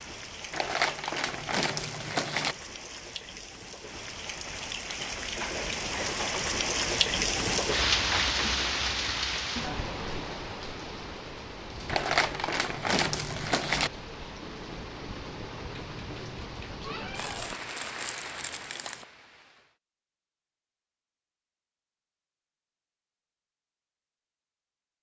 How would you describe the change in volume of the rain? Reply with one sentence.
The loudness of the rain goes up, then down.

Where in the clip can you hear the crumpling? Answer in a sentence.
The crumpling can be heard from 0.5 to 2.5 s, from 11.8 to 13.9 s and from 17.1 to 19.1 s.